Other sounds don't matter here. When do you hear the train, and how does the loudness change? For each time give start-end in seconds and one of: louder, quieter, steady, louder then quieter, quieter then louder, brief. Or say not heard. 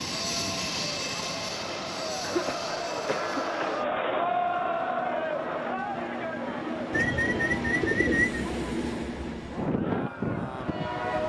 0.0-11.2 quieter then louder.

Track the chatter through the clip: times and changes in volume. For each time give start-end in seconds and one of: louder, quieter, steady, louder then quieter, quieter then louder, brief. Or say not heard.
0.0-10.9 louder then quieter.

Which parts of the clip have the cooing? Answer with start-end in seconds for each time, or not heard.
6.9-8.4.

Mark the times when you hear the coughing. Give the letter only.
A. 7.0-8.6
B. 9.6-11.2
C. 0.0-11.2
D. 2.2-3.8
D.